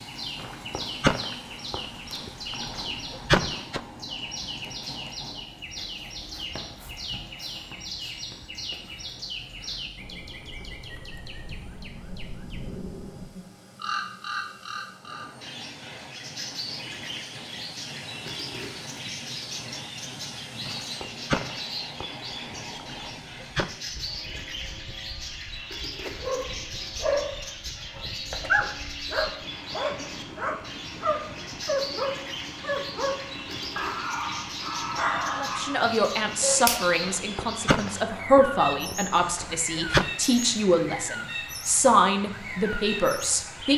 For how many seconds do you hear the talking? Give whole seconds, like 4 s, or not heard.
8 s.